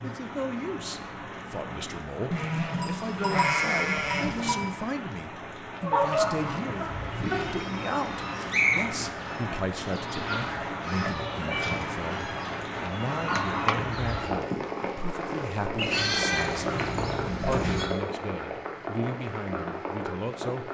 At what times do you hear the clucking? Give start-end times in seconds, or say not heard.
5.7-14.3.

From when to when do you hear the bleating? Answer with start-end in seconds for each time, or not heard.
2.3-4.6, 7.0-8.6, 15.8-17.9.